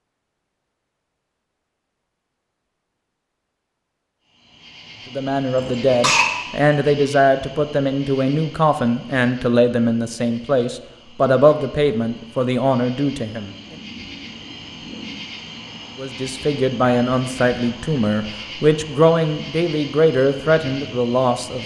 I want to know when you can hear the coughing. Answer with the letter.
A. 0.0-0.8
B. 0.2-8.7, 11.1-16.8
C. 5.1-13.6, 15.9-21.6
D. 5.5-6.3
D.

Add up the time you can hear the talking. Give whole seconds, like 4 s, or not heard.
14 s.